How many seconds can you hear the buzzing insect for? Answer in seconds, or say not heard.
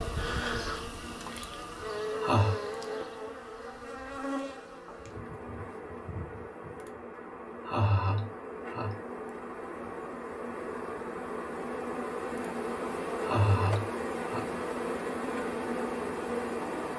17 s.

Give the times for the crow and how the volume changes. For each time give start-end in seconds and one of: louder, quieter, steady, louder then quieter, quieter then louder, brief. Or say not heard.
not heard.